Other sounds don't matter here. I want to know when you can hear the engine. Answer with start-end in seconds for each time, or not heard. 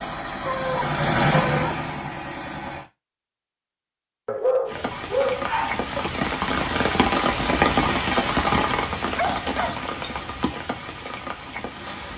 0.0-2.9.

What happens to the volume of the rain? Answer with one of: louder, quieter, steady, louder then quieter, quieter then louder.
louder then quieter.